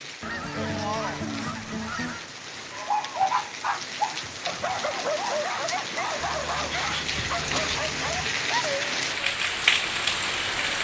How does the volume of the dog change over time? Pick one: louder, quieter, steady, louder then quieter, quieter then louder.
quieter.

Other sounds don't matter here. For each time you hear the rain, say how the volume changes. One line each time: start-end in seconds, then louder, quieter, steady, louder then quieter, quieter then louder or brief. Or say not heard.
0.0-10.7 louder.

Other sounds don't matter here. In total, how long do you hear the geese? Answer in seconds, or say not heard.
4 s.